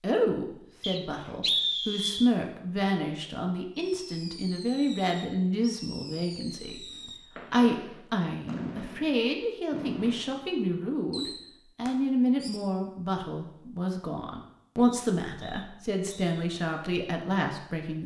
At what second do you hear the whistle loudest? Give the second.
2 s.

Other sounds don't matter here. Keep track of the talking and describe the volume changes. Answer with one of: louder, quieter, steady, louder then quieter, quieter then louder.
steady.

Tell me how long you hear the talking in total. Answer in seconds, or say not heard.
18 s.